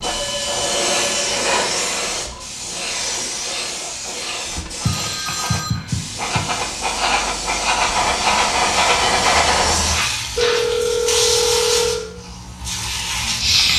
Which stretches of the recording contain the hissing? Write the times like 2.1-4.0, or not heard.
0.0-13.7.